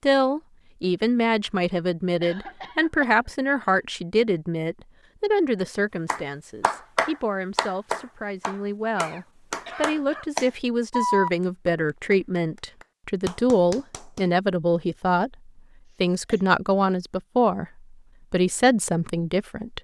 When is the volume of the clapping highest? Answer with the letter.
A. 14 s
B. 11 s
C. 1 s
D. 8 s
B.